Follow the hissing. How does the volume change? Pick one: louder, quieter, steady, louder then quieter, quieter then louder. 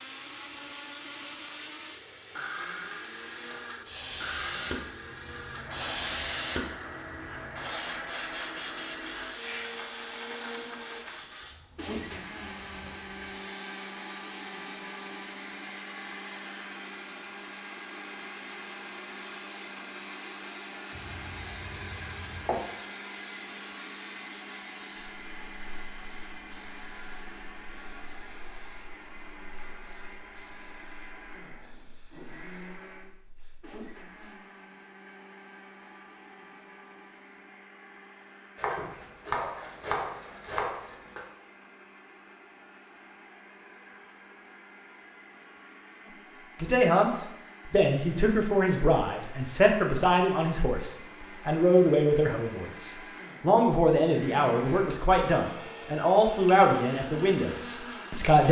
quieter.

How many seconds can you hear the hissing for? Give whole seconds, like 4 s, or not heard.
34 s.